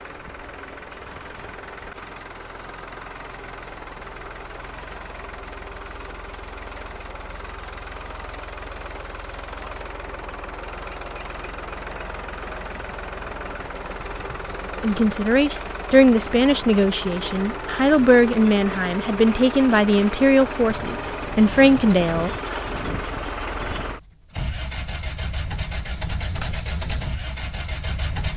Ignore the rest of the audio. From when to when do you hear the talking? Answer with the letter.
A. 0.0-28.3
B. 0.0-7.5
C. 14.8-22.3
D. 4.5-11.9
C.